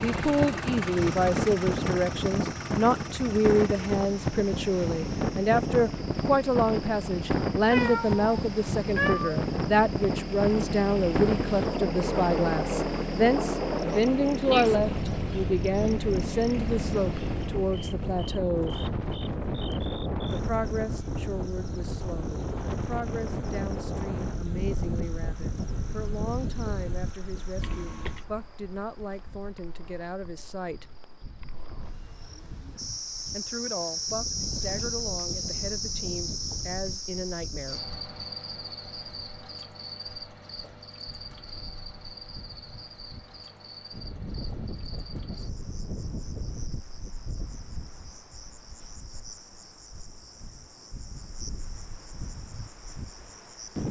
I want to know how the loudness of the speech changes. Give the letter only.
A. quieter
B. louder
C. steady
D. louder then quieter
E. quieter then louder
A.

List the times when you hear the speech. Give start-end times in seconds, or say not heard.
0.0-18.8, 20.2-30.9, 33.3-37.8.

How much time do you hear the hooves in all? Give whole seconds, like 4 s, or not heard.
not heard.